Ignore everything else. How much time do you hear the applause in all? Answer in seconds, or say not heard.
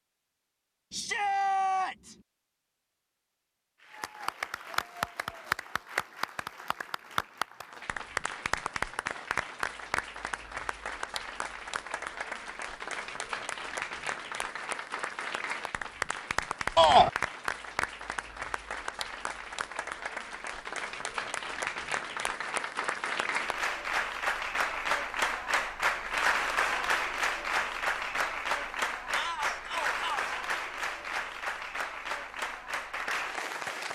30 s.